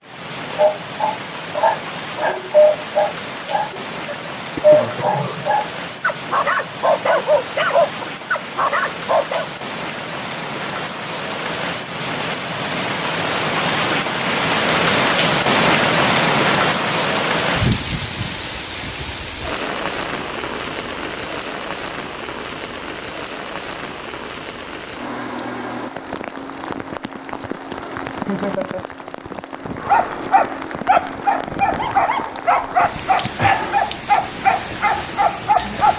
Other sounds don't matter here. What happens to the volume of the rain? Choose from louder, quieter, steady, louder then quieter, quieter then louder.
louder then quieter.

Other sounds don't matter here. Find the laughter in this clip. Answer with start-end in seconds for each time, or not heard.
28.2-28.9.